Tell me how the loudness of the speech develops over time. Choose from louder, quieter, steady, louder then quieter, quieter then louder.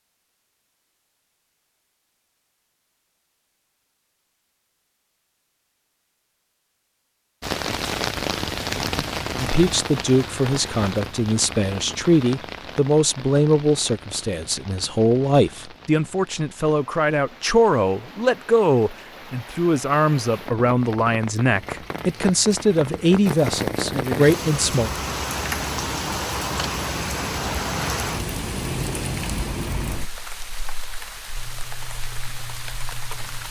steady.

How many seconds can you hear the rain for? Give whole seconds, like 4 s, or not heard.
26 s.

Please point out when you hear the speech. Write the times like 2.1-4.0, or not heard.
9.4-24.9.